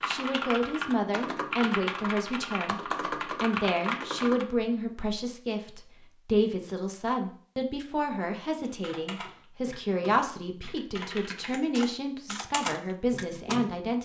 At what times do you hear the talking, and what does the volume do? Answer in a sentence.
The talking can be heard from 0.1 to 13.9 s, at a steady volume.